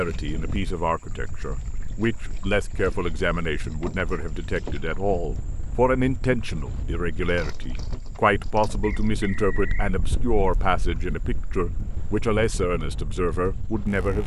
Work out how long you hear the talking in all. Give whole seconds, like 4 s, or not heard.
14 s.